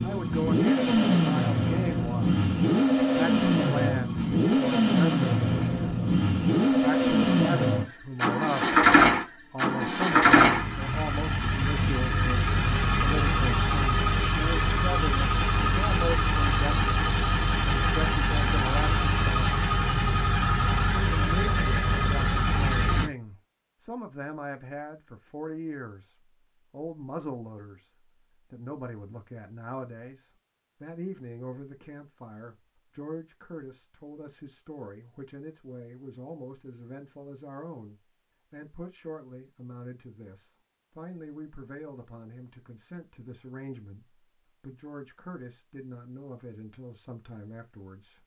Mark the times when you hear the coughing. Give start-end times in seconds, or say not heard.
not heard.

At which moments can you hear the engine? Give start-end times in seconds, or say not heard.
0.0-23.1.